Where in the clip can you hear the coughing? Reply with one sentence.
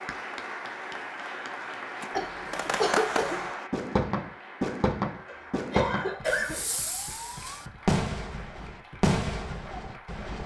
You can hear the coughing from 2.1 to 3.5 s and from 5.2 to 6.6 s.